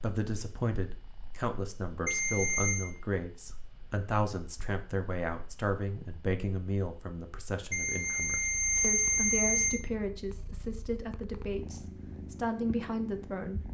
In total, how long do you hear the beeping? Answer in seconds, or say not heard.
3 s.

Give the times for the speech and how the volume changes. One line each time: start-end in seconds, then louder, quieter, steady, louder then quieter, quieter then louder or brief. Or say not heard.
0.0-13.7 steady.